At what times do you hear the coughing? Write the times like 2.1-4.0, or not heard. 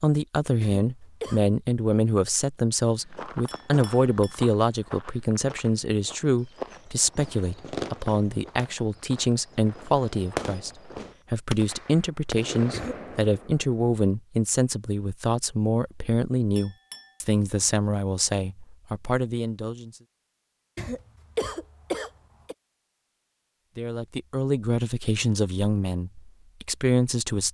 0.6-1.4, 12.7-13.1, 20.8-22.6.